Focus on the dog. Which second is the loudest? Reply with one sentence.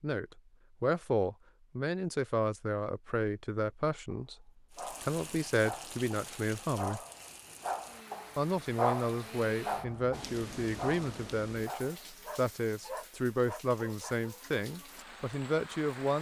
The loudest moment of the dog is at 9 seconds.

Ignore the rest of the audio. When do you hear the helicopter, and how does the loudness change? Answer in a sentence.
The helicopter can't be heard in this clip.